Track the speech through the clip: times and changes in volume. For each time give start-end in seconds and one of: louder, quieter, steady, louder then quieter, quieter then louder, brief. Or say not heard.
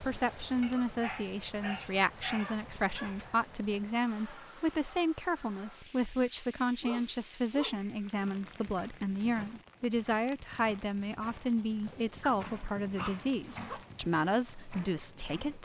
0.0-15.6 steady.